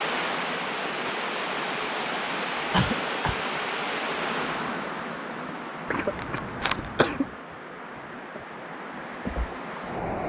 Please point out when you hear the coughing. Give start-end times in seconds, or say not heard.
2.7-3.4, 5.9-7.3.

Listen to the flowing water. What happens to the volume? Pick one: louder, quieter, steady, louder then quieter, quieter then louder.
quieter.